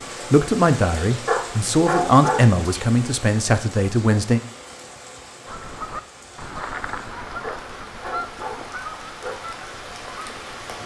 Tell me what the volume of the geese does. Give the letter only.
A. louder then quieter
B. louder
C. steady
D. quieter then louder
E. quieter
E.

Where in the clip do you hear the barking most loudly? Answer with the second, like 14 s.
2 s.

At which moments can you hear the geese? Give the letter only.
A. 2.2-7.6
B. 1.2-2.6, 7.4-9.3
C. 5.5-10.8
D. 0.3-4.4
C.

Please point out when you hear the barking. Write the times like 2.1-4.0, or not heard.
1.2-2.6, 7.4-9.3.